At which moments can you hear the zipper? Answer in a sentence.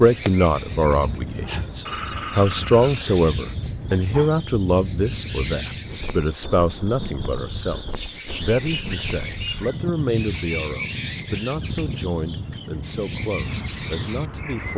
You can't hear the zipper here.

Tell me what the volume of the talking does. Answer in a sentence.
The loudness of the talking goes down.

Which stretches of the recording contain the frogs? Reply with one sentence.
The frogs can't be heard in this clip.